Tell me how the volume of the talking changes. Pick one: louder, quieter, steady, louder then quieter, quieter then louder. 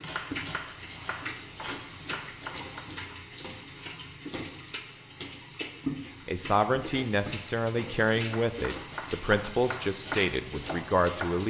steady.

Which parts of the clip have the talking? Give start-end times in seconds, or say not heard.
6.2-11.4.